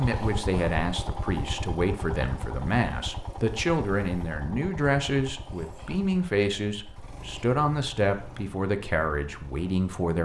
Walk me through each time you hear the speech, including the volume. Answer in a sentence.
You can hear the speech from 0.0 to 10.1 s, at a steady volume.